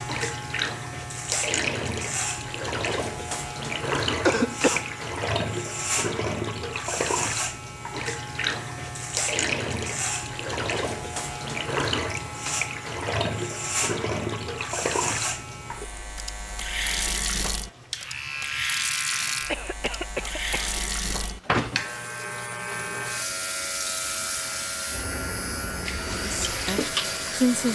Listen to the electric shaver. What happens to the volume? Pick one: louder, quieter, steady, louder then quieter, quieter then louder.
steady.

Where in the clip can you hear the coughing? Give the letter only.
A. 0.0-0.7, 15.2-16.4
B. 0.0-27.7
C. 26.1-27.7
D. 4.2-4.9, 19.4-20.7
D.